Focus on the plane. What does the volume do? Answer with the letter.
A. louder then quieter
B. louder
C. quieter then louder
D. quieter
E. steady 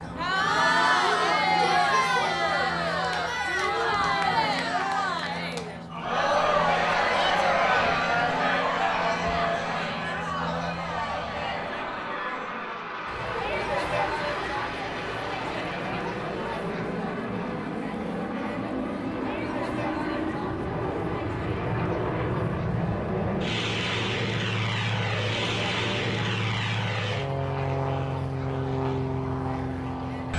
B.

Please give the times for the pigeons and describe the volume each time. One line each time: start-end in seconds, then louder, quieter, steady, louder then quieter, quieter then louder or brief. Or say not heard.
not heard.